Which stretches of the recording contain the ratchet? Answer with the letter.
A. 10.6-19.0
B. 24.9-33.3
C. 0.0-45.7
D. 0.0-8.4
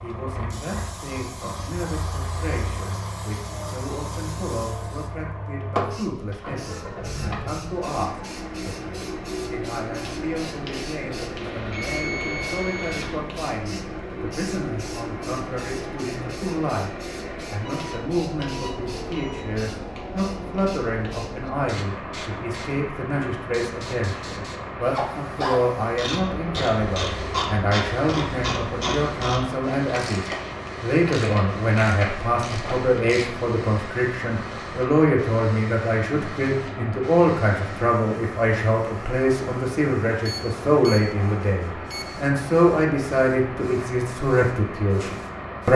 B.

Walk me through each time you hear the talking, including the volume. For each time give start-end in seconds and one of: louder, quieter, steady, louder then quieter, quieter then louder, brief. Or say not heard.
0.0-45.7 louder.